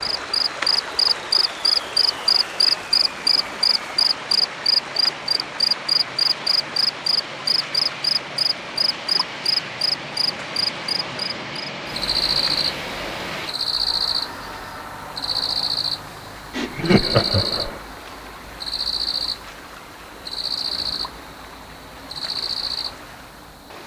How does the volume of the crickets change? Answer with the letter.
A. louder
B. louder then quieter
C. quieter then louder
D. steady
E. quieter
E.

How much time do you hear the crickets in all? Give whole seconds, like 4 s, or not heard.
24 s.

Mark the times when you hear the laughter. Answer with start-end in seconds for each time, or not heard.
16.5-17.8.